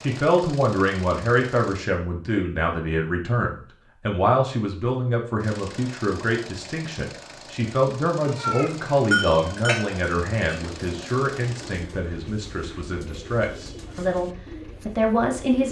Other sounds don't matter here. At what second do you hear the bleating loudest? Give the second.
9 s.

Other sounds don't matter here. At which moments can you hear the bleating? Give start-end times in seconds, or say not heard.
8.2-10.6.